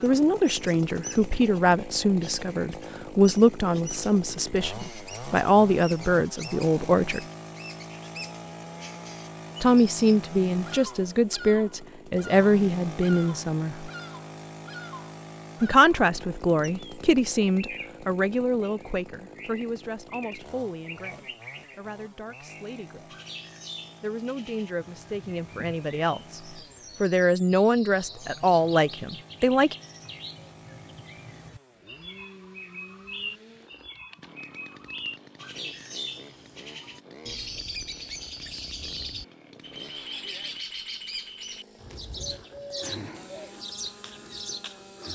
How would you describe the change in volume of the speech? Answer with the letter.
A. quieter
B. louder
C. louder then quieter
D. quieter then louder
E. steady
D.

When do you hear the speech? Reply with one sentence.
The speech can be heard from 0.0 to 7.2 s, from 9.6 to 13.9 s, from 15.6 to 23.1 s and from 24.0 to 29.8 s.